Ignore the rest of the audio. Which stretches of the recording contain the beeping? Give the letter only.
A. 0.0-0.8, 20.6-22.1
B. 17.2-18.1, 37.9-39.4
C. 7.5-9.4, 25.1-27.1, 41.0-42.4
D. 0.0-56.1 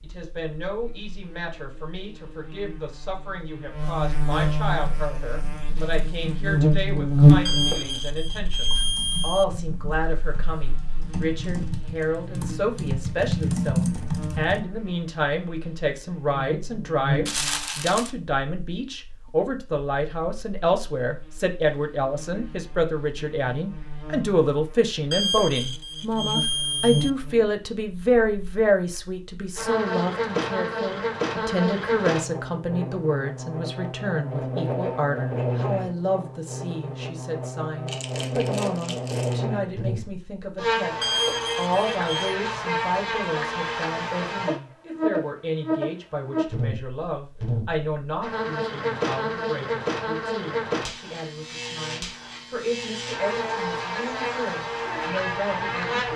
C.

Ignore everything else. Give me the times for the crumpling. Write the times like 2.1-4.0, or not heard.
17.2-18.1, 37.9-39.4.